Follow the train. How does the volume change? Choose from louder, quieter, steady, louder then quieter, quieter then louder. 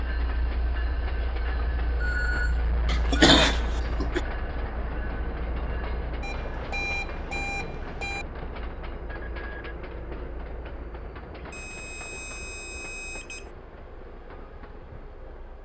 quieter.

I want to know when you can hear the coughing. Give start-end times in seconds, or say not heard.
2.9-4.2.